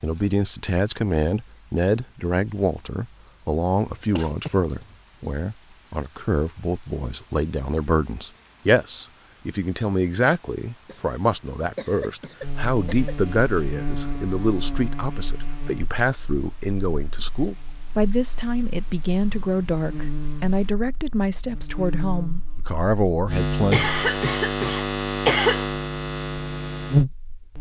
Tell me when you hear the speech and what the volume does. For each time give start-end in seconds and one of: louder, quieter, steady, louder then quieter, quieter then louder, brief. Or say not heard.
0.0-23.9 steady.